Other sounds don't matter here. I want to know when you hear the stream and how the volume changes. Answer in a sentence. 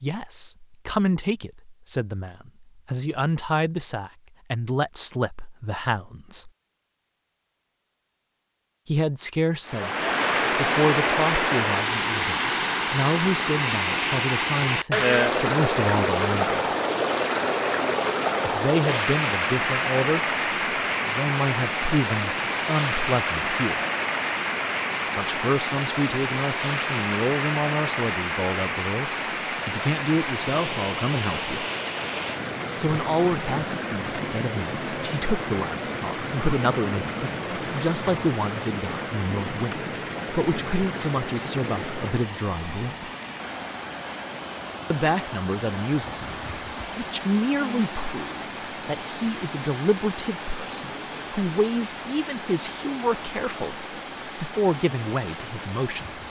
You can hear the stream from 9.7 to 56.2 s, getting quieter.